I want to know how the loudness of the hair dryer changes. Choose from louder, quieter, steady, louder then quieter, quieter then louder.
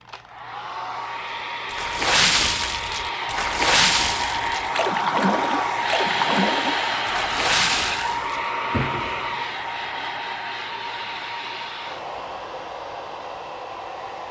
louder then quieter.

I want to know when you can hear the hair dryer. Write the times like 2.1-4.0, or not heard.
0.0-14.2.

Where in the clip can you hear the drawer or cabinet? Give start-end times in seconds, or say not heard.
8.6-9.4.